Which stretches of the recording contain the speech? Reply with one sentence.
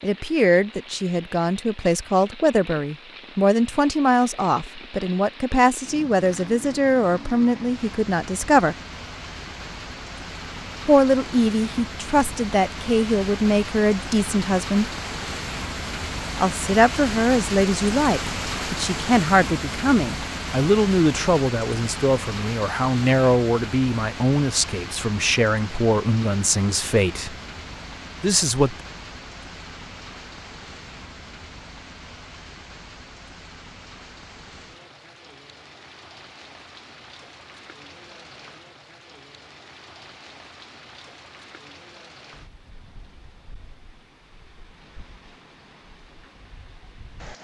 You can hear the speech from 0.0 to 8.8 s, from 10.8 to 14.8 s, from 16.4 to 27.4 s and from 28.2 to 28.8 s.